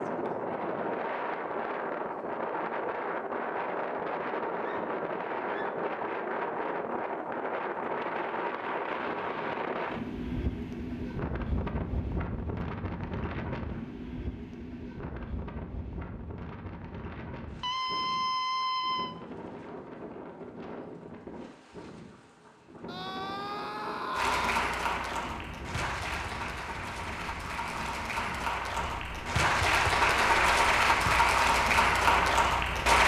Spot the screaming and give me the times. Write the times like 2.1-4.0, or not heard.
4.6-5.8, 17.6-19.1, 22.9-24.6.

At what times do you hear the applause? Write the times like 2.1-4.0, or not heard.
24.1-33.0.